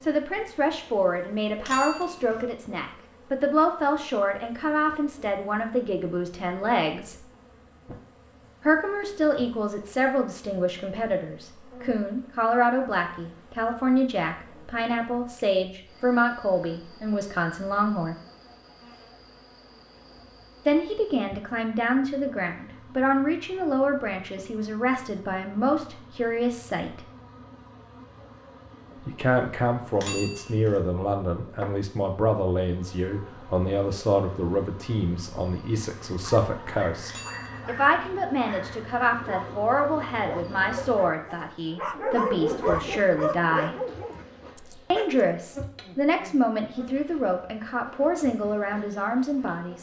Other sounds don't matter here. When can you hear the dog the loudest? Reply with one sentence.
The loudest moment of the dog is at 43 seconds.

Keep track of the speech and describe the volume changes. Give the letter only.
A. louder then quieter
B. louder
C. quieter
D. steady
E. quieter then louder
D.